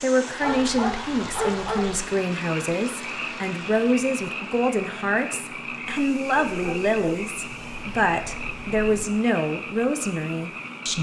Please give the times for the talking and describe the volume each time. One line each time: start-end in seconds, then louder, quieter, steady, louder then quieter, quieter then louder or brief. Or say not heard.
0.0-10.9 steady.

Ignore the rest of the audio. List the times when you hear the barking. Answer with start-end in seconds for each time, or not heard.
0.4-2.0, 6.3-9.2.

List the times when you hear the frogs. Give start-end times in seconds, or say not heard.
1.9-10.9.